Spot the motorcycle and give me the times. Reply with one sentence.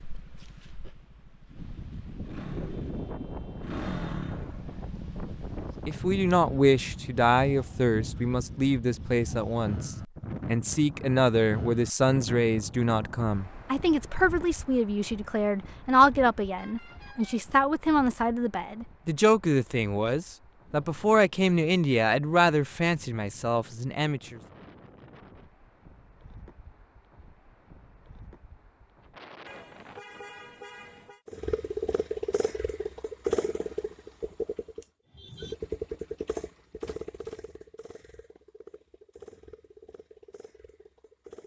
You can hear the motorcycle from 0.0 to 7.2 s and from 31.2 to 41.4 s.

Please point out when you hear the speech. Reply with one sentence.
The speech can be heard from 5.8 to 24.4 s.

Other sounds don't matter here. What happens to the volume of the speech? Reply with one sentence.
The volume of the speech stays about the same.